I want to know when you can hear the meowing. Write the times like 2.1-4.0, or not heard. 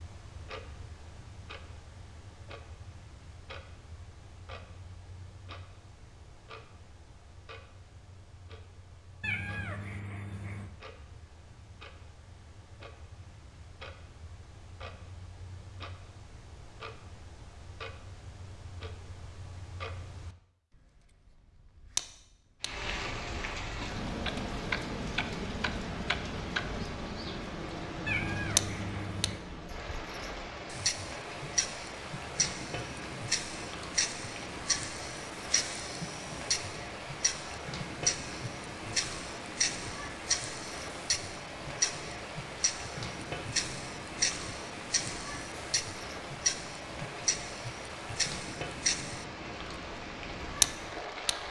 9.2-10.7, 28.1-29.4.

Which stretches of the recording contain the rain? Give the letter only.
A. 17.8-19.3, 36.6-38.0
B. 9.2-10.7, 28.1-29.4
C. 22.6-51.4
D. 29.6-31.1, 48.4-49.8
C.